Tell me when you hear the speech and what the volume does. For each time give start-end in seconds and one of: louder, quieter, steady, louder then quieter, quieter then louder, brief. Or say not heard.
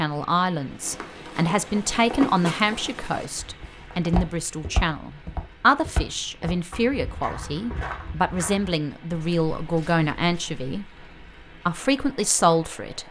0.0-11.1 steady
11.7-13.0 brief.